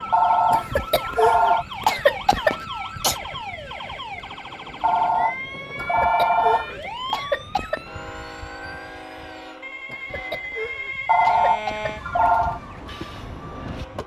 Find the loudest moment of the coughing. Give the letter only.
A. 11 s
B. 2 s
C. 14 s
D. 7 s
B.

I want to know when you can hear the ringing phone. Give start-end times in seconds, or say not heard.
0.1-1.6, 4.8-6.7, 11.1-12.6.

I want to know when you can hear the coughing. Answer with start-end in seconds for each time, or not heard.
0.5-3.1, 5.8-7.8, 9.8-12.4.